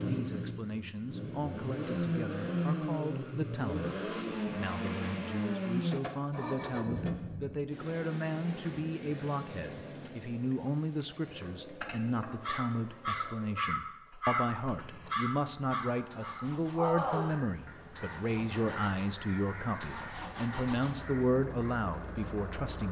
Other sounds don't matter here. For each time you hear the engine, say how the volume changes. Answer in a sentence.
You can hear the engine from 0.0 to 22.8 s, getting quieter then louder.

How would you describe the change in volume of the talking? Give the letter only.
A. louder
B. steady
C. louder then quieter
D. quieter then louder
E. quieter
A.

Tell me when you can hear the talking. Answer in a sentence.
You can hear the talking from 0.0 to 22.8 s.